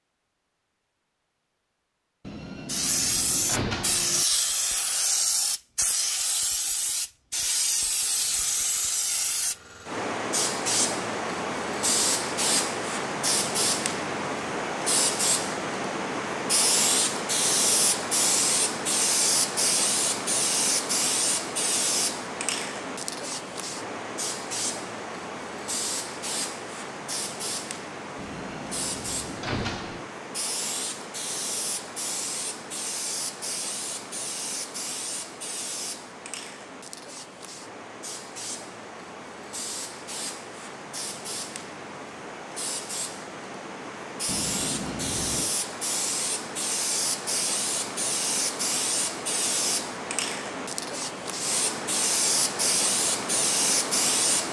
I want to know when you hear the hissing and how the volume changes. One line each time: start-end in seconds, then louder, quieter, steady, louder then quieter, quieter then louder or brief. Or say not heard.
2.6-54.4 quieter then louder.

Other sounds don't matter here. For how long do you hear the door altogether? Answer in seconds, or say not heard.
5 s.